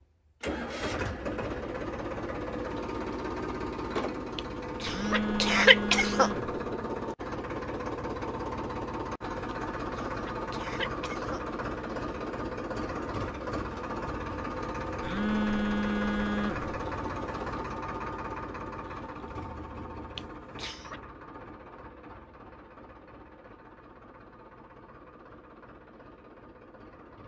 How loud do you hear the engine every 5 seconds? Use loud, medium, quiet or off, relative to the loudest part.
loud, loud, loud, loud, quiet, quiet.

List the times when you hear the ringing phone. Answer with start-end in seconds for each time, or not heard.
4.8-6.6, 15.0-16.7.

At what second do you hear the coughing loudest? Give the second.
6 s.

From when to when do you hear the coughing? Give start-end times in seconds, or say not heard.
4.3-6.3, 9.5-11.4, 20.1-21.0.